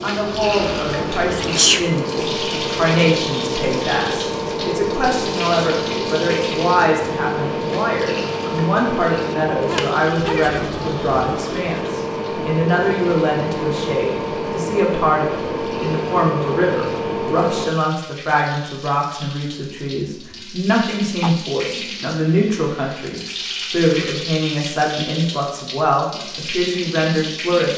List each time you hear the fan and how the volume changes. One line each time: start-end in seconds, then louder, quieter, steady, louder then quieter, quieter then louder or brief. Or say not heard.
0.0-17.8 steady.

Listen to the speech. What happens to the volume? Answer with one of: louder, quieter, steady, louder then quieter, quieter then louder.
steady.